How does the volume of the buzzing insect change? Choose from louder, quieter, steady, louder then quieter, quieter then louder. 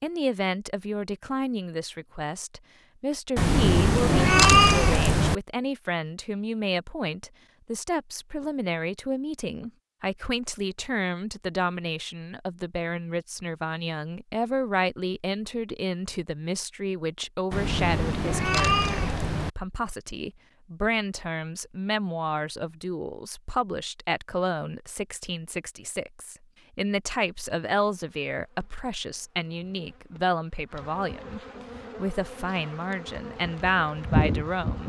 louder.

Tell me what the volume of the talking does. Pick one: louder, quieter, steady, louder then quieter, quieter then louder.
steady.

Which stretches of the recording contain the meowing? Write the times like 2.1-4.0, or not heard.
3.4-5.3, 17.5-19.5.